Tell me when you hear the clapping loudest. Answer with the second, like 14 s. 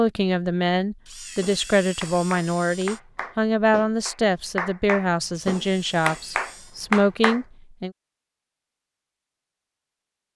7 s.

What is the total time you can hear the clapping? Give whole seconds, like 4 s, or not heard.
6 s.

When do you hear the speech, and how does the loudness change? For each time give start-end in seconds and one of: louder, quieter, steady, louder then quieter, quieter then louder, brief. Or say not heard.
0.0-7.9 steady.